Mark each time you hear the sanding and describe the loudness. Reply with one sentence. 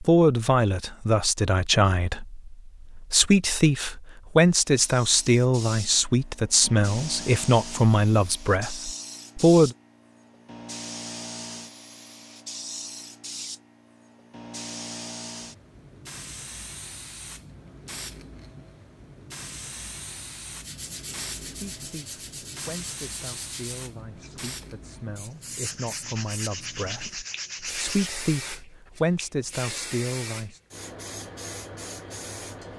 The sanding can be heard from 20.6 to 28.1 s, getting quieter then louder.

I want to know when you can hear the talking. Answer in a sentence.
The talking can be heard from 0.0 to 9.8 s and from 21.4 to 30.6 s.